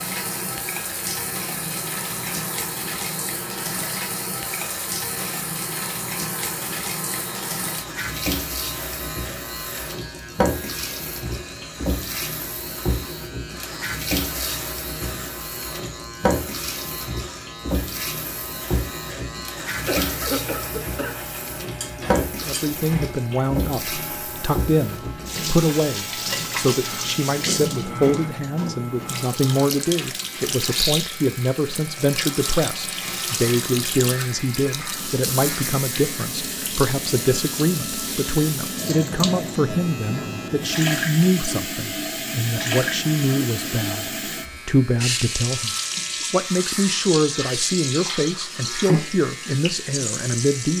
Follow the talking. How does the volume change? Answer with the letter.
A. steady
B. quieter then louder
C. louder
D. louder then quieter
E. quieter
A.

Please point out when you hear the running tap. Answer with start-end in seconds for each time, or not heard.
0.0-50.7.